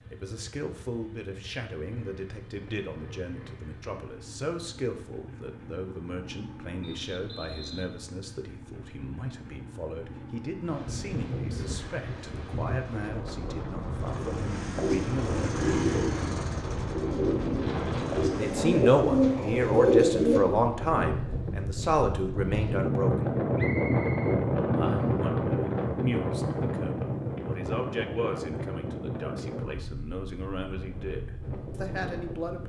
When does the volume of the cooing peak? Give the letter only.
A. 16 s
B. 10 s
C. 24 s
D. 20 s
D.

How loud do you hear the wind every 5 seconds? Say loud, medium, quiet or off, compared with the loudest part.
off, off, medium, medium, loud, loud, quiet.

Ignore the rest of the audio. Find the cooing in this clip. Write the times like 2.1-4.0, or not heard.
14.8-20.4.